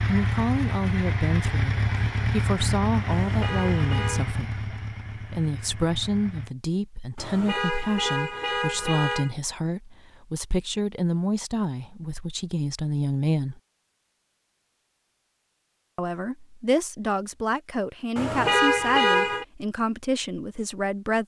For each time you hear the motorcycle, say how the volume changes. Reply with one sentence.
The motorcycle can be heard from 0.0 to 6.5 s, getting quieter.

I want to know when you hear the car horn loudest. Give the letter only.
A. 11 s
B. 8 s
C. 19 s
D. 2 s
C.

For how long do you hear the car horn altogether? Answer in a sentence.
You can hear the car horn for 5 seconds altogether.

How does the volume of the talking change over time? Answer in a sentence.
The volume of the talking stays about the same.